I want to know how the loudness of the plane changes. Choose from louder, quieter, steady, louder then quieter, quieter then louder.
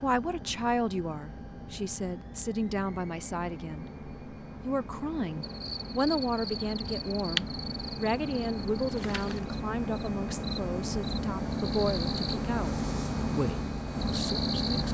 louder.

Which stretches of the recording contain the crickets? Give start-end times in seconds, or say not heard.
5.4-14.8.